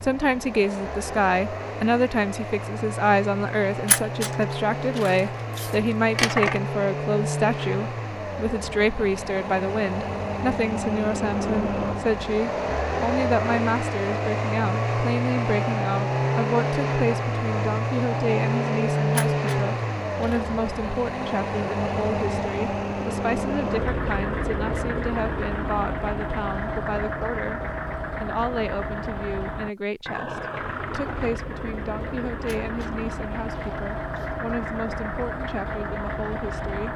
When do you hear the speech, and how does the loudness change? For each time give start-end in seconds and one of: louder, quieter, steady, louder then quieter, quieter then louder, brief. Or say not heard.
0.0-27.6 quieter
28.2-36.9 steady.